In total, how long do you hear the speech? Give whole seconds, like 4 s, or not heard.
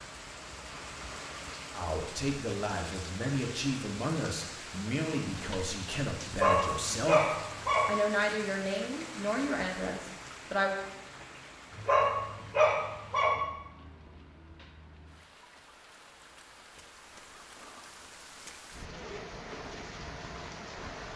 9 s.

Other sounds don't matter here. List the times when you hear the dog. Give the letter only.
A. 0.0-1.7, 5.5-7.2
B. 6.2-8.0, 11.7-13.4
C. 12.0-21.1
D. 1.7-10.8
B.